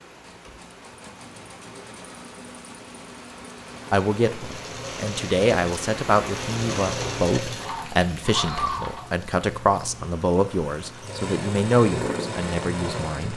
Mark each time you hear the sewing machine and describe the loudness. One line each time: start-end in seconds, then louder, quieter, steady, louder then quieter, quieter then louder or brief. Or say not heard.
0.2-13.3 louder.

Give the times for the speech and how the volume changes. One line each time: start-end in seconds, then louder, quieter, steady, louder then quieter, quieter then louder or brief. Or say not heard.
3.9-13.3 steady.